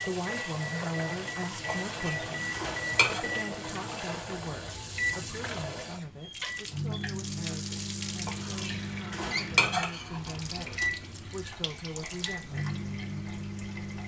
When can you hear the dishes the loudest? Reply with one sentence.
The volume of the dishes peaks at 10 seconds.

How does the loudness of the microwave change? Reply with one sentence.
The volume of the microwave stays about the same.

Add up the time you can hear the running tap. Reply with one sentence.
You can hear the running tap for 14 seconds altogether.